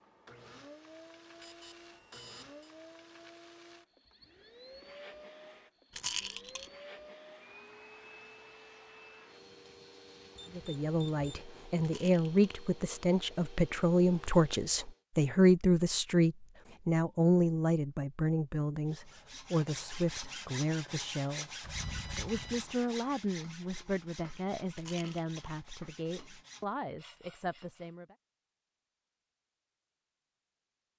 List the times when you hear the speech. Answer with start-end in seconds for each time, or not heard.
10.5-28.1.